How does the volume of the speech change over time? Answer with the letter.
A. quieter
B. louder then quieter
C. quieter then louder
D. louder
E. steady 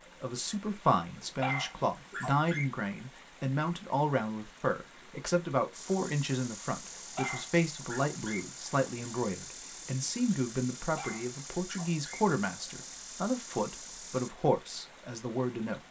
E.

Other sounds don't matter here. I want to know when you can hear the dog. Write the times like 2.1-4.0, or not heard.
1.4-2.6, 7.0-8.4, 10.9-12.2.